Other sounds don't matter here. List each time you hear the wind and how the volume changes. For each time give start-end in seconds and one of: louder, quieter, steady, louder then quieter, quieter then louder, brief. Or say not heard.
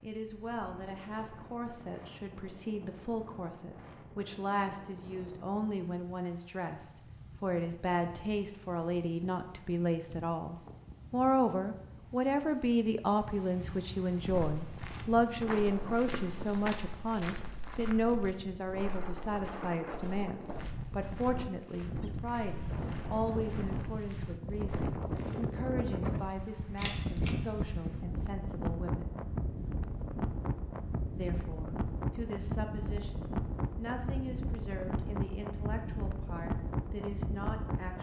0.0-37.9 louder.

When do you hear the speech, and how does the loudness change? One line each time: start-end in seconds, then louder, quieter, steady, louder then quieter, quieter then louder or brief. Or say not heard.
0.0-29.1 louder then quieter
31.1-37.9 steady.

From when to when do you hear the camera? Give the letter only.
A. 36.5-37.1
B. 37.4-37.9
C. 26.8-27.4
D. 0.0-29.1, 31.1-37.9
C.